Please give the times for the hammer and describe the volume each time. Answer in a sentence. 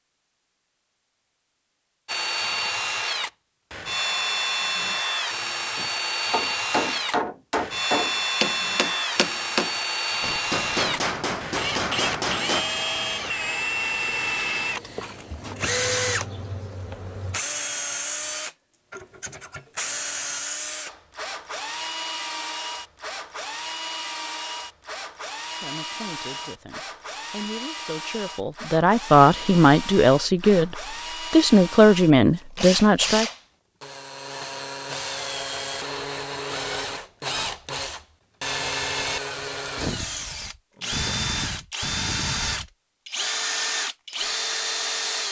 The hammer can be heard from 5.8 to 12.7 s, at a steady volume.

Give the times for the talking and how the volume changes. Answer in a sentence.
You can hear the talking from 25.6 to 33.3 s, getting louder.